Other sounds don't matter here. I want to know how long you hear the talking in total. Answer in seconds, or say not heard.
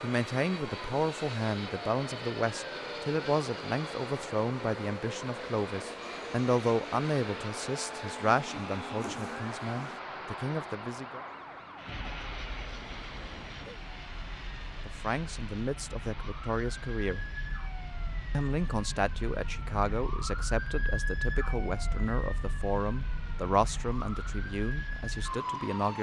21 s.